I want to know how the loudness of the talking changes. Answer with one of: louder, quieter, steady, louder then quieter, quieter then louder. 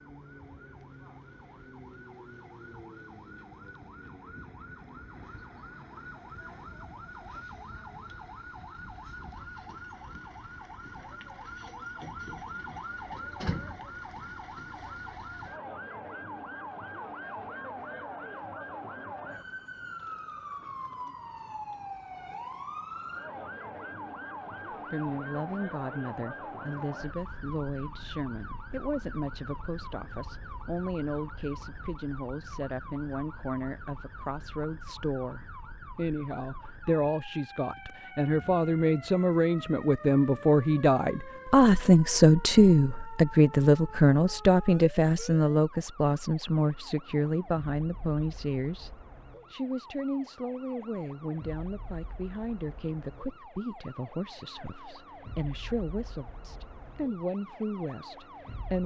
louder then quieter.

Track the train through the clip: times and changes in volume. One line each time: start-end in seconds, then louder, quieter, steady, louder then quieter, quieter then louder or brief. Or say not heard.
not heard.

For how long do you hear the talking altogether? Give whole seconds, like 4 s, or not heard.
34 s.